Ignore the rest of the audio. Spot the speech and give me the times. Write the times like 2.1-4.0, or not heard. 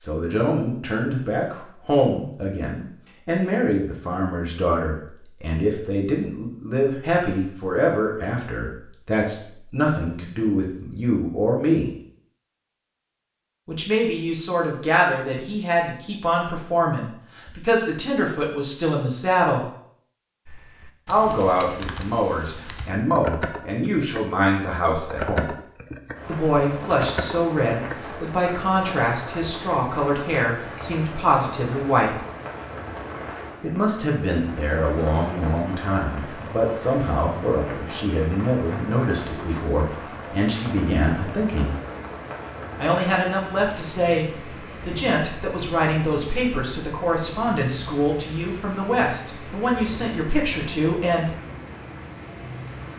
0.0-11.9, 13.7-19.6, 21.1-25.6, 26.2-32.1, 33.6-41.8, 42.8-51.4.